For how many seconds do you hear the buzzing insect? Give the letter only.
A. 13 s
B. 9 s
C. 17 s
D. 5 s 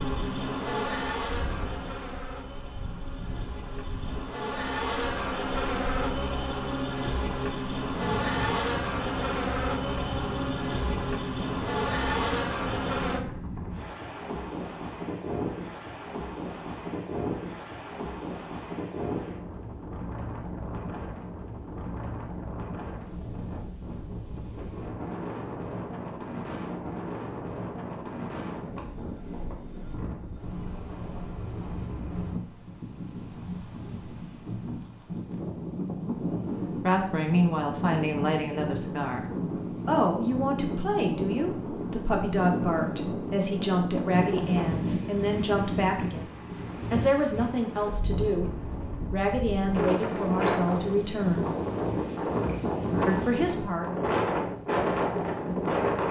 A.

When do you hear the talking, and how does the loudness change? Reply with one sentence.
The talking can be heard from 36.8 to 46.3 s, at a steady volume; from 46.9 to 51.5 s, at a steady volume; and briefly from 53.0 to 53.9 s.